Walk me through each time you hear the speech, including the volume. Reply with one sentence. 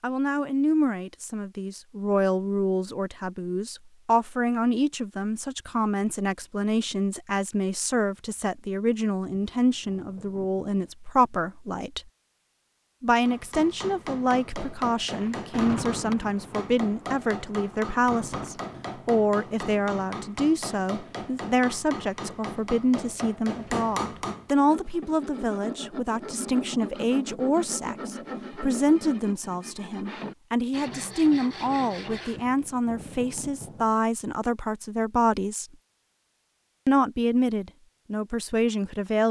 You can hear the speech from 0.0 to 12.0 s, at a steady volume; from 13.0 to 35.6 s, at a steady volume; and briefly from 36.9 to 39.2 s.